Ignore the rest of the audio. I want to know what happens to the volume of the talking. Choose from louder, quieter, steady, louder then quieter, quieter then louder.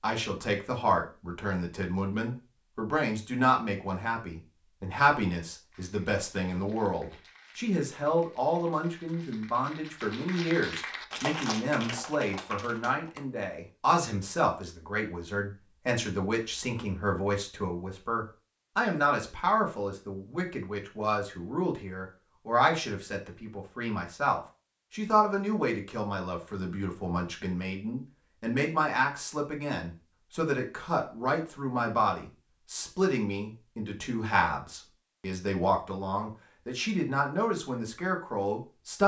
steady.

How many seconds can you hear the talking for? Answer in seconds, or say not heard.
39 s.